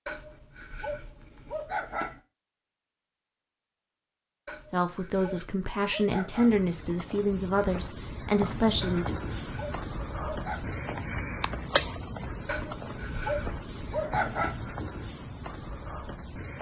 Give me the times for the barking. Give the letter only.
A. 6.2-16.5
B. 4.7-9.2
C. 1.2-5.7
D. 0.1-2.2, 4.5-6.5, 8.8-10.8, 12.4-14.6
D.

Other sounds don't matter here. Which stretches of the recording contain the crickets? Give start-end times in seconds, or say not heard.
6.2-16.5.